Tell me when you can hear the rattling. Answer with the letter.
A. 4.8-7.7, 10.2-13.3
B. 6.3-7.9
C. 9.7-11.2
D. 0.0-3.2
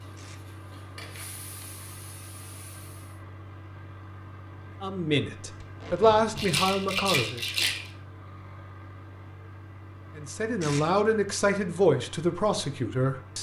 B.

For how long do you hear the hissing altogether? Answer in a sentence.
You can hear the hissing for 3 seconds altogether.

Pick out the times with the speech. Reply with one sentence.
The speech can be heard from 4.8 to 7.7 s and from 10.2 to 13.3 s.